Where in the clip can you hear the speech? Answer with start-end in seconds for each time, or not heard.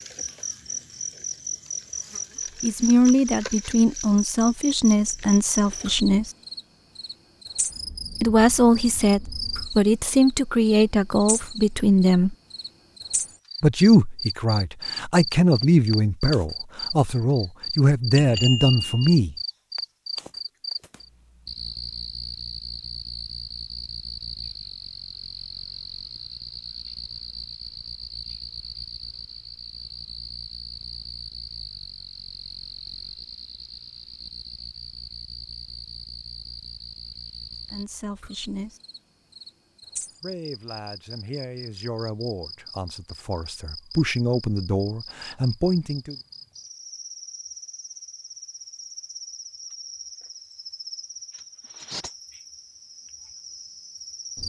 2.6-6.3, 8.2-12.3, 13.6-19.4, 37.7-38.8, 40.2-46.1.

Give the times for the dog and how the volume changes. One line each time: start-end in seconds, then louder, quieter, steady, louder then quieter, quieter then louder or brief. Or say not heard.
not heard.